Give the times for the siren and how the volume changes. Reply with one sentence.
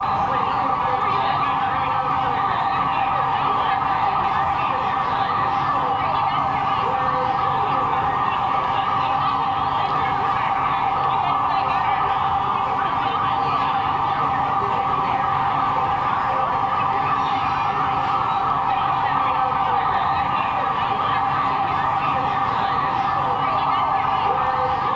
You can hear the siren from 0.0 to 24.9 s, at a steady volume.